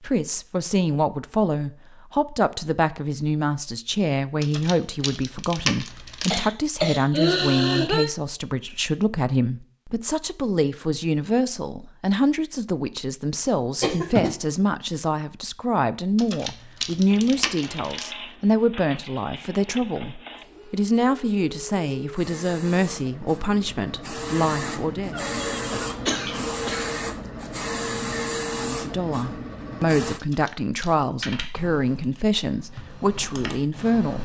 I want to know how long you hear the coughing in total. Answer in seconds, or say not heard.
4 s.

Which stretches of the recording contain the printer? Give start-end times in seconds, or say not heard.
17.1-30.2.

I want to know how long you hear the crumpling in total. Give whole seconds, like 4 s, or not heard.
5 s.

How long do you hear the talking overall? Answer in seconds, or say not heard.
31 s.